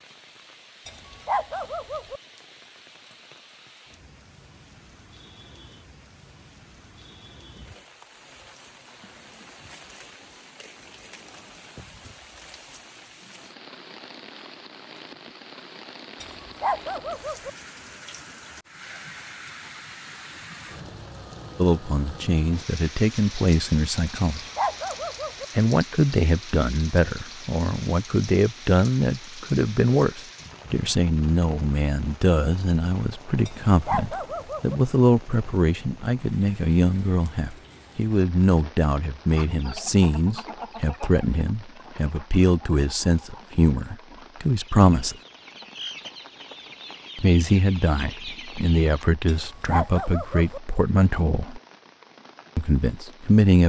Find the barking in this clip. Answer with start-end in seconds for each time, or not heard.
0.8-2.2, 16.2-17.5, 24.2-25.4, 33.5-34.8, 49.2-50.6.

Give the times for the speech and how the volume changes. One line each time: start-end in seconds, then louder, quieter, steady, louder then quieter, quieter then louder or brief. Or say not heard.
21.6-24.4 brief
25.6-45.1 steady
47.1-51.6 steady
52.5-53.6 brief.